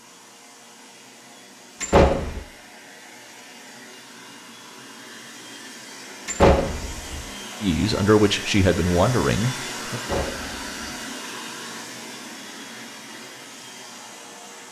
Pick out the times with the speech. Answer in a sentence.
The speech can be heard from 7.6 to 10.0 s.